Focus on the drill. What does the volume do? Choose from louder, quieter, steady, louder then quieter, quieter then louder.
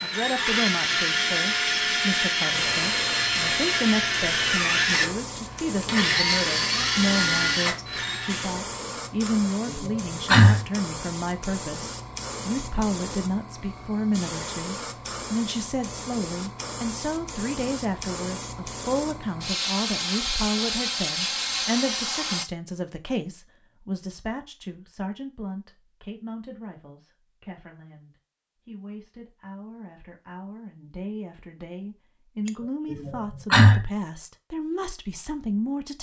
steady.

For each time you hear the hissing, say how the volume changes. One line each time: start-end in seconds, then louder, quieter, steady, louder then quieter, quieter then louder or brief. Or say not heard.
2.5-22.4 louder.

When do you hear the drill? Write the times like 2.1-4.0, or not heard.
0.0-8.6.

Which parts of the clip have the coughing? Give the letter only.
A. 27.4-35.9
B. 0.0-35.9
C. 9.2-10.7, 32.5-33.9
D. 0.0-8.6
C.